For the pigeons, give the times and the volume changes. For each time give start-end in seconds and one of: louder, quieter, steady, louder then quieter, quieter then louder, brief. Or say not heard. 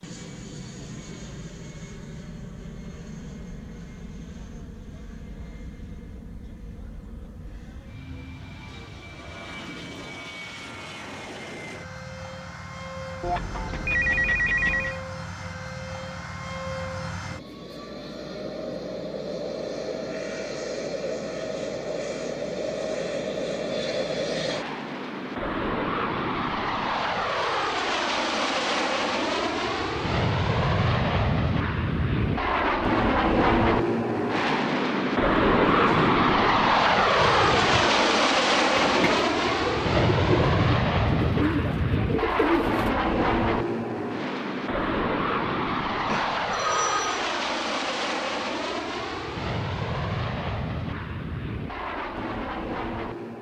35.1-43.0 steady.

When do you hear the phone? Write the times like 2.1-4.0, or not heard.
13.2-15.0, 46.0-47.2.